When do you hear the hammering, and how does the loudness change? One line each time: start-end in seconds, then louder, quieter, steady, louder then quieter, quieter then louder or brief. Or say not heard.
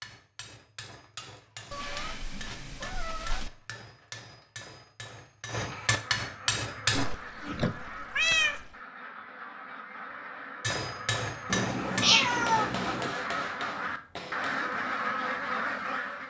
0.0-7.0 louder
10.6-14.8 quieter.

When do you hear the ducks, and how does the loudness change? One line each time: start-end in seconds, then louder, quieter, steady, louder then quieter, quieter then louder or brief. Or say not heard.
5.8-16.2 louder.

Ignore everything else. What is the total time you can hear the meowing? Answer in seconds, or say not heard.
5 s.